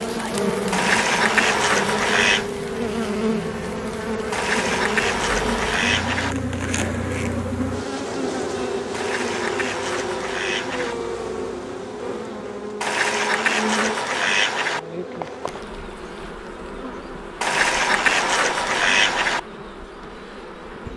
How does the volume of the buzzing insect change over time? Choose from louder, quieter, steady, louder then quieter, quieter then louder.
quieter.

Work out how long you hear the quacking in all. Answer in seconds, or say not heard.
10 s.